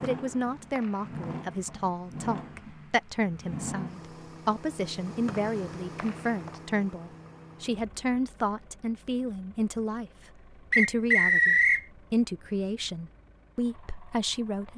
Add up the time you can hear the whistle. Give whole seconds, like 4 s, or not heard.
4 s.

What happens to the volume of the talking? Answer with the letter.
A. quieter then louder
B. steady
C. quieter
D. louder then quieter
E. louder
B.